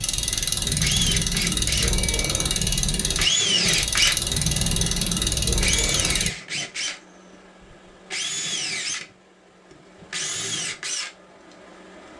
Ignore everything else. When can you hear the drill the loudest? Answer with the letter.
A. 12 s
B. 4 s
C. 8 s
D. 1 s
B.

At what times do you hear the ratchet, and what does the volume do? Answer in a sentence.
The ratchet can be heard from 0.0 to 6.3 s, at a steady volume.